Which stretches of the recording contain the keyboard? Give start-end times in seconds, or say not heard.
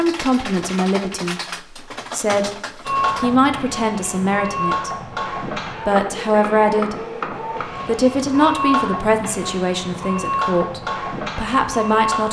0.0-3.4.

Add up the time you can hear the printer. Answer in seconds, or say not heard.
9 s.